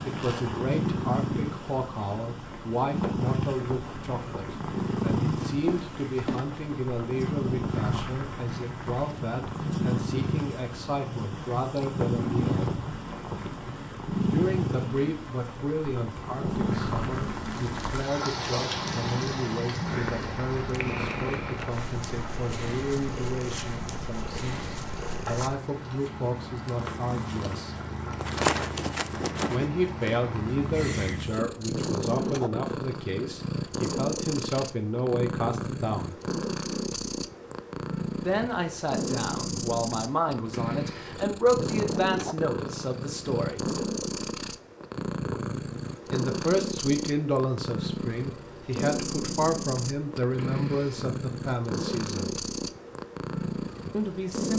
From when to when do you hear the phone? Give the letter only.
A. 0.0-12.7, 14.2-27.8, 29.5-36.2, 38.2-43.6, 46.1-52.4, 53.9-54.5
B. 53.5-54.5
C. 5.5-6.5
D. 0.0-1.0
C.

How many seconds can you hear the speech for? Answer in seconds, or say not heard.
45 s.